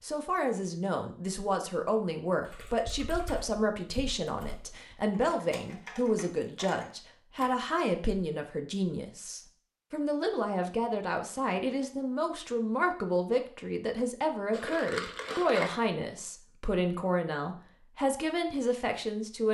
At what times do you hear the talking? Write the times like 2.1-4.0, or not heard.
0.0-19.5.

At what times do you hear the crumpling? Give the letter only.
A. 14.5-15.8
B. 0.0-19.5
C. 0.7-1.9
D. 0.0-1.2
A.